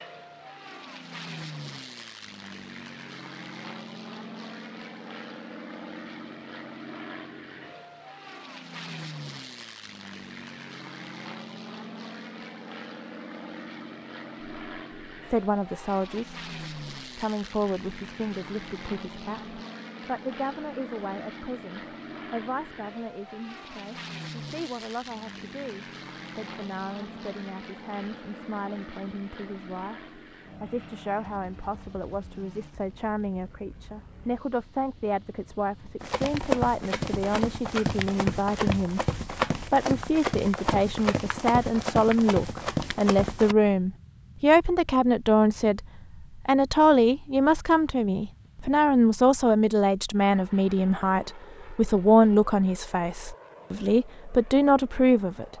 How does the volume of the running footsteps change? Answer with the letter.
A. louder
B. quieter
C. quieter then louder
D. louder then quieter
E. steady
E.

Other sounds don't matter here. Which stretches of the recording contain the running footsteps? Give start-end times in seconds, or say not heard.
36.0-43.5.